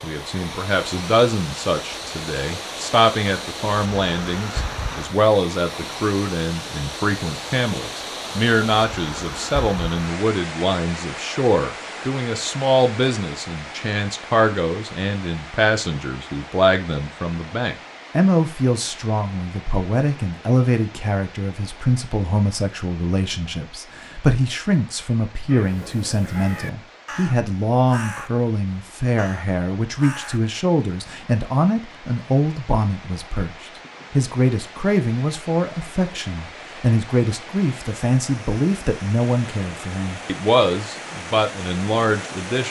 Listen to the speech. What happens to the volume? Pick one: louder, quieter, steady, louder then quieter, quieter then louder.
steady.